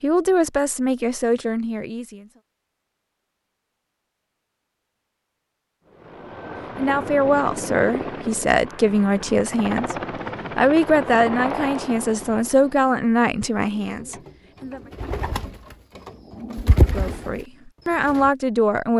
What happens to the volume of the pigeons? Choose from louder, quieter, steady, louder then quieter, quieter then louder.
louder then quieter.